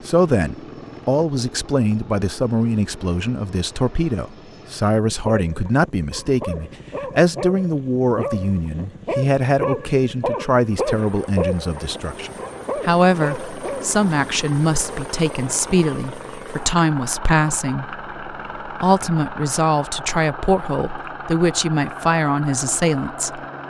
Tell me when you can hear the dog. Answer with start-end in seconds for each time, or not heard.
5.3-13.9.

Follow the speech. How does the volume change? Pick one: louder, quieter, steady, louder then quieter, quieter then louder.
steady.